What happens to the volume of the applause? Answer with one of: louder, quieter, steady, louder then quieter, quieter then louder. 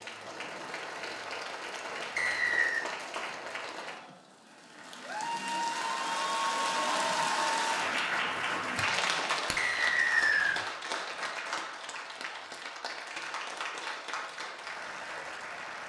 louder then quieter.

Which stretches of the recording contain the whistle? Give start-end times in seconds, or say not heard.
2.1-2.9, 9.6-10.6.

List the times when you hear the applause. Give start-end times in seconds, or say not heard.
0.0-15.8.